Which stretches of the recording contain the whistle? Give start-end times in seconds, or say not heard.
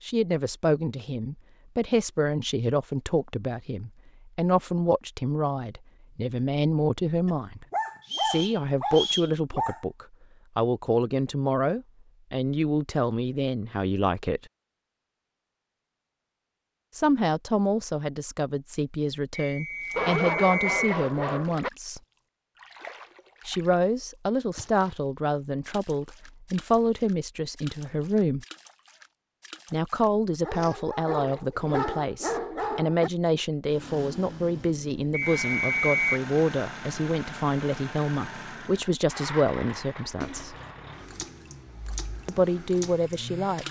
8.1-9.3, 19.3-21.0, 35.1-36.2.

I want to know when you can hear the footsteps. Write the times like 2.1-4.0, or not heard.
not heard.